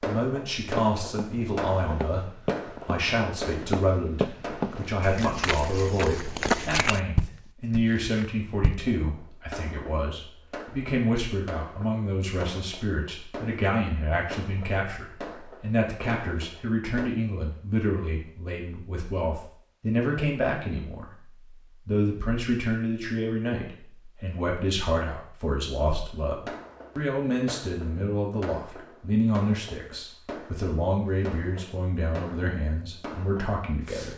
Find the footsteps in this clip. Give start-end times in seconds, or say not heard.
0.8-8.9.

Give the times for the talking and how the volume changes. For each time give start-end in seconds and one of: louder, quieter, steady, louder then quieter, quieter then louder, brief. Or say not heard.
0.1-34.1 steady.